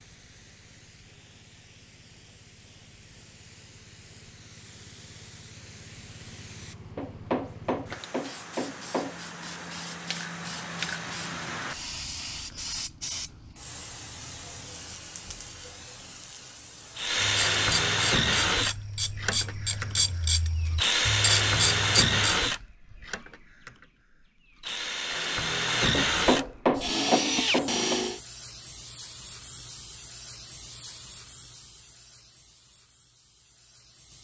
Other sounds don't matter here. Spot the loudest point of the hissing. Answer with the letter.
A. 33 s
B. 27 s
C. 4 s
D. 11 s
D.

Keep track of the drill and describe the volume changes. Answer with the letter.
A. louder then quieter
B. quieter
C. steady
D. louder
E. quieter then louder
E.